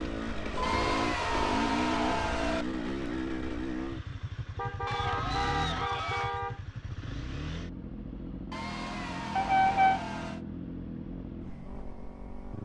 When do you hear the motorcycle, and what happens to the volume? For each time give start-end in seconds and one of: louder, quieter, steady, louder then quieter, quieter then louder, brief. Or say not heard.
0.0-12.6 quieter.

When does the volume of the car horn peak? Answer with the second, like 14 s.
10 s.